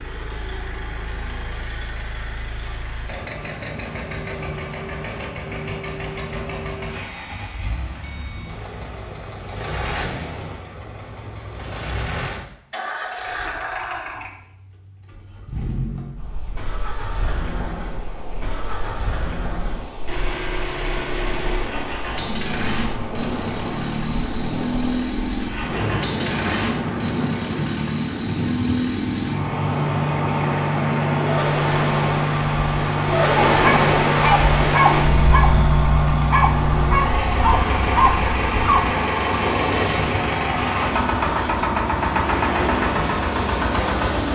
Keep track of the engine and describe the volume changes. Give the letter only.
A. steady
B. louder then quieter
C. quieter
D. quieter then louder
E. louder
E.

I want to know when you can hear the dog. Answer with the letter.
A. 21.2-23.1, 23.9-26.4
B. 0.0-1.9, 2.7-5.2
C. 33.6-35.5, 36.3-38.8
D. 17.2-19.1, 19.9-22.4
C.